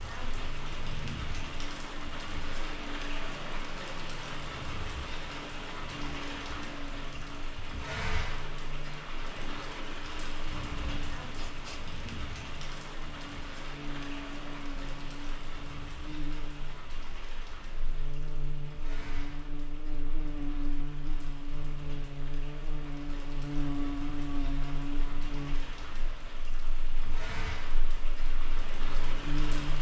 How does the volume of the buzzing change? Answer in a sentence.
The volume of the buzzing goes up.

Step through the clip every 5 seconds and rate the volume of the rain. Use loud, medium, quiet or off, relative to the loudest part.
loud, loud, loud, medium, medium, loud.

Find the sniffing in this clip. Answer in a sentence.
The sniffing can be heard from 11.3 to 11.8 s.